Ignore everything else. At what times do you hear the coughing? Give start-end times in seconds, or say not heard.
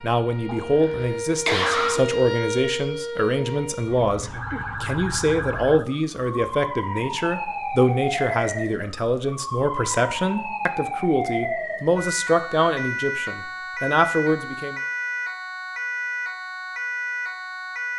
0.5-2.0.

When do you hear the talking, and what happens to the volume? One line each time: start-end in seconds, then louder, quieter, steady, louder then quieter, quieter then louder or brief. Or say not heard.
0.0-14.8 steady.